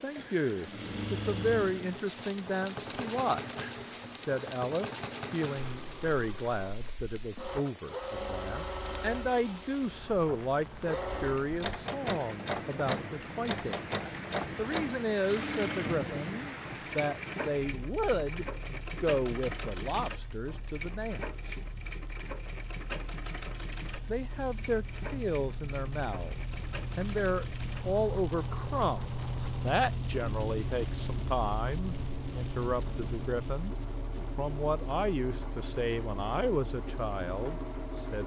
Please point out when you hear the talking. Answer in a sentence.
You can hear the talking from 0.0 to 13.8 s, from 14.6 to 21.6 s and from 24.1 to 38.2 s.